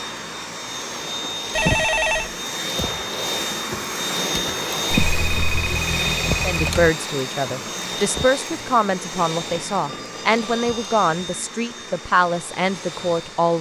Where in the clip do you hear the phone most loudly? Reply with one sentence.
The volume of the phone peaks at 2 seconds.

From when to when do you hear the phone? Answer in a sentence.
You can hear the phone from 1.6 to 2.3 s, from 4.9 to 6.9 s and from 9.8 to 10.9 s.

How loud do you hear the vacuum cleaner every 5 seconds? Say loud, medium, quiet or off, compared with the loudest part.
loud, loud, medium.